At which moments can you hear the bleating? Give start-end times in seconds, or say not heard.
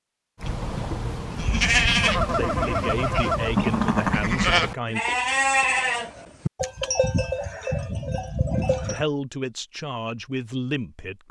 0.4-9.1.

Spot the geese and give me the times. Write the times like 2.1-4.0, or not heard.
2.0-3.5.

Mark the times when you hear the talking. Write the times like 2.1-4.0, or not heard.
2.4-5.0, 8.8-11.2.